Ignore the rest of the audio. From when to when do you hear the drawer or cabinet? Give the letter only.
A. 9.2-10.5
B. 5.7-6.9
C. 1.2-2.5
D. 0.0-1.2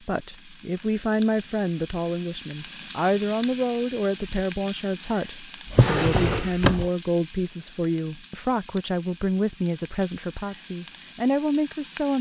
B.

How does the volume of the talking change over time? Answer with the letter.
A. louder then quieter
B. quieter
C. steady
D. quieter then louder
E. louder
C.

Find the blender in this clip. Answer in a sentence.
The blender can't be heard in this clip.